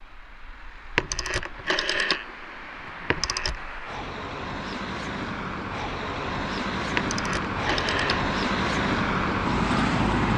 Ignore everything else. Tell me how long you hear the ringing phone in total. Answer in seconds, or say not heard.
4 s.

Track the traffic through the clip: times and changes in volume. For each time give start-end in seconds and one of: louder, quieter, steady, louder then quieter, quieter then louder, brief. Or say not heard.
0.0-10.3 louder.